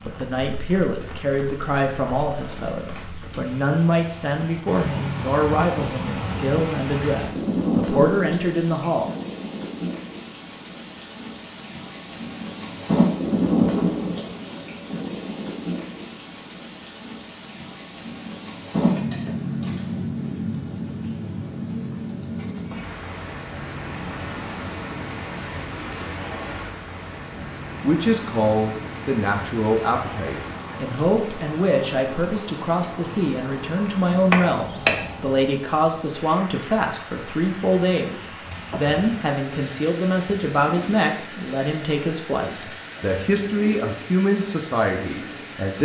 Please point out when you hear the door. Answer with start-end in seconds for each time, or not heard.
34.3-35.0.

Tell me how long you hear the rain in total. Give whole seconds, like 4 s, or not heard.
46 s.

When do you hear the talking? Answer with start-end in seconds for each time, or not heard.
0.0-9.1, 27.3-45.8.